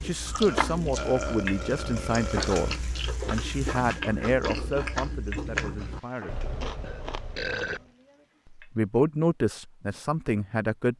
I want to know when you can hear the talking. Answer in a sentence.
The talking can be heard from 0.0 to 6.4 s and from 8.6 to 10.9 s.